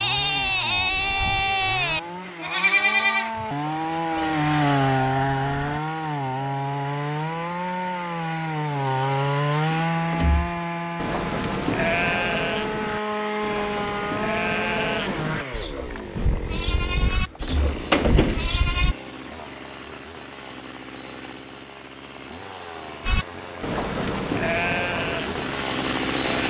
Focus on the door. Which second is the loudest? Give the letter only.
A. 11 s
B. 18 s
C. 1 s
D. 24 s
B.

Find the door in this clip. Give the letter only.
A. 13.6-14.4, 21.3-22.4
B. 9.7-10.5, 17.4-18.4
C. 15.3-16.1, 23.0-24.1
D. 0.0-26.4
B.